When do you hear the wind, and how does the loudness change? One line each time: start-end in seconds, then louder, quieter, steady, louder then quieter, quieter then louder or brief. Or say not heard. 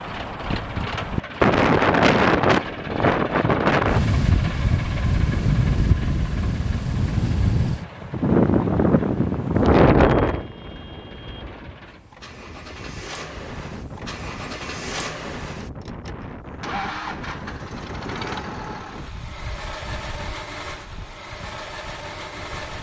0.0-22.7 quieter.